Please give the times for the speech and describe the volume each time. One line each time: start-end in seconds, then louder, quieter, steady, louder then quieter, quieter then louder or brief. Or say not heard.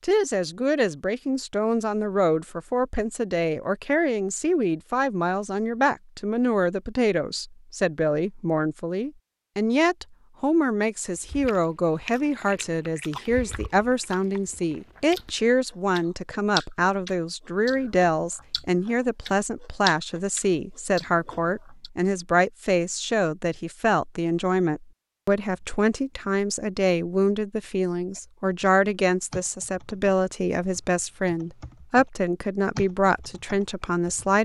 0.0-34.3 steady.